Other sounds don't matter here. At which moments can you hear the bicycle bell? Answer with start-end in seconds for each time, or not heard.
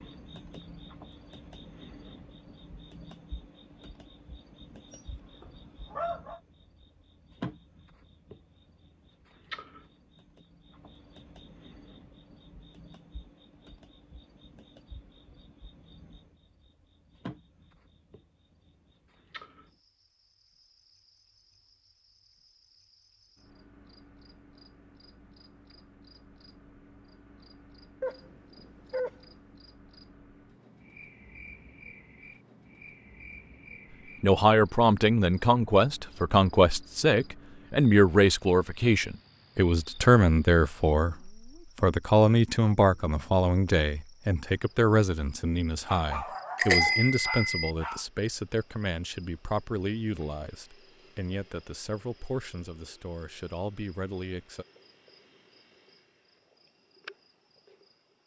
46.5-47.7.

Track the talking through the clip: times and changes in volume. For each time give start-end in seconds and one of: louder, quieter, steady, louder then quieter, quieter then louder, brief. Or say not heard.
34.2-54.6 quieter.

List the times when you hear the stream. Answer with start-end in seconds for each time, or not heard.
not heard.